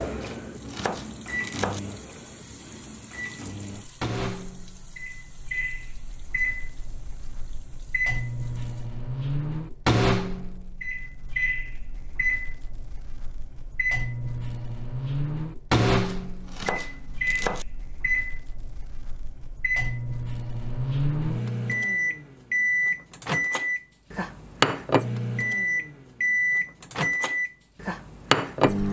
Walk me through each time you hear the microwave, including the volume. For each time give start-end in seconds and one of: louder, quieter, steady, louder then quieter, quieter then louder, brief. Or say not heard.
0.0-28.8 louder.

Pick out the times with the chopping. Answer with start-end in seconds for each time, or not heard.
0.2-1.8, 16.0-17.6.